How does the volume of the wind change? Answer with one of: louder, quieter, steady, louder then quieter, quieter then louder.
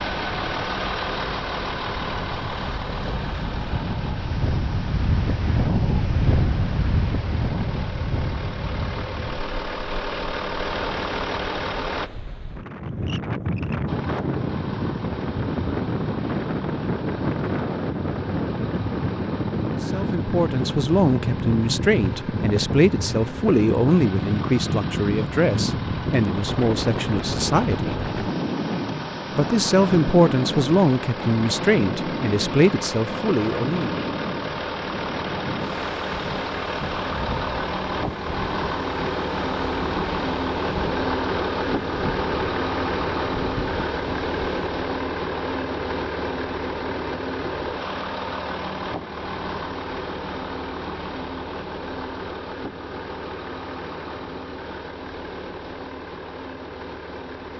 quieter.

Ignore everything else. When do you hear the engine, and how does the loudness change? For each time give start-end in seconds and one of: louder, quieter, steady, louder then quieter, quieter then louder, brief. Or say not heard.
0.0-12.1 quieter then louder
13.8-57.5 louder then quieter.